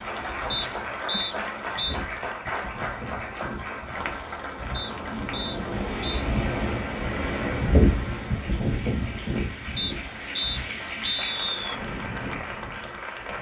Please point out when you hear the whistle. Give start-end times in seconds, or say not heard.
0.5-1.9, 4.7-6.2, 9.8-11.8.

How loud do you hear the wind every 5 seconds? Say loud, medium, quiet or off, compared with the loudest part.
quiet, loud, quiet.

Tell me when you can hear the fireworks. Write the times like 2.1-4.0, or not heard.
not heard.